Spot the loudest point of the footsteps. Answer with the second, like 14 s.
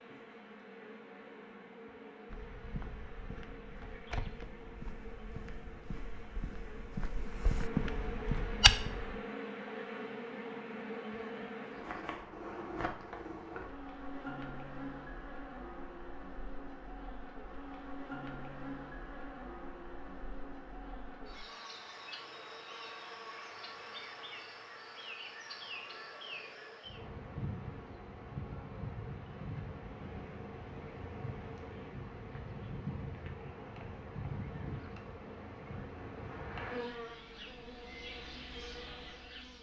9 s.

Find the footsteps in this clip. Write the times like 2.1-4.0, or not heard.
2.2-9.2.